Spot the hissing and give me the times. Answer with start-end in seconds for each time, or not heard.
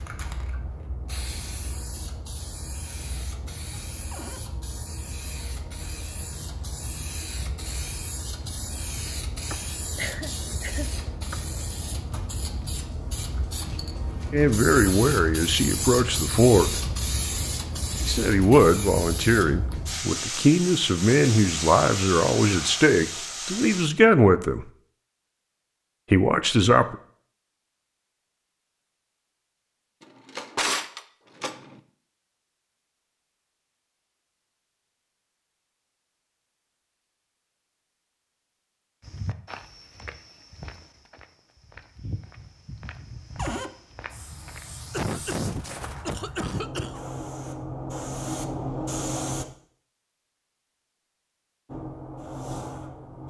0.0-23.9, 44.0-49.5, 51.6-53.2.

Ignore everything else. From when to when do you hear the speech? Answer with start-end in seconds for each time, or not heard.
14.3-16.8, 18.1-24.6, 26.1-26.9.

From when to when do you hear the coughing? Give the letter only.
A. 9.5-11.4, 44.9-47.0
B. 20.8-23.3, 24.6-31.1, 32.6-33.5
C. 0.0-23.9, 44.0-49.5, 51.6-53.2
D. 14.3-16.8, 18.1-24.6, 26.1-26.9
A.